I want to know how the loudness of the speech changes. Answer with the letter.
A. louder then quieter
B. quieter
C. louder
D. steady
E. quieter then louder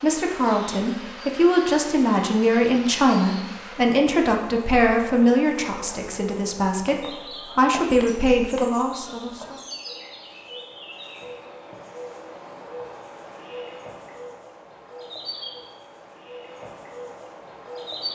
E.